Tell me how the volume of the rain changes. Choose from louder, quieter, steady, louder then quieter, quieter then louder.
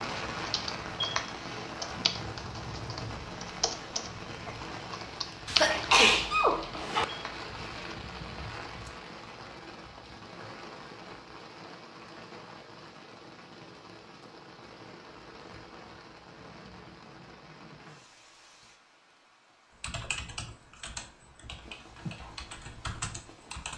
quieter.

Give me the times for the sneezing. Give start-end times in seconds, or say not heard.
5.5-7.0.